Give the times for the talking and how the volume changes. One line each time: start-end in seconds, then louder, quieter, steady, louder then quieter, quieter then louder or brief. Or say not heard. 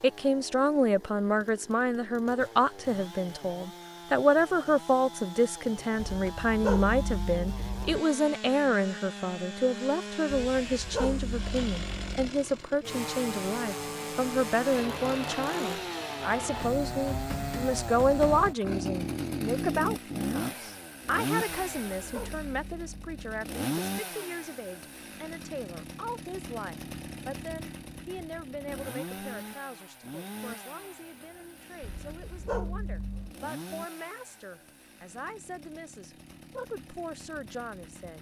0.0-38.1 quieter.